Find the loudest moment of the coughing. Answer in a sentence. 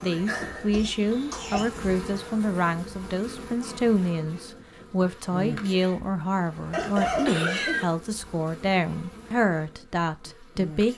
The loudest moment of the coughing is at 7 seconds.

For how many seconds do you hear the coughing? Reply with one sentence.
You can hear the coughing for 2 seconds altogether.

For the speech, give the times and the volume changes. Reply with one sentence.
You can hear the speech from 0.0 to 10.9 s, at a steady volume.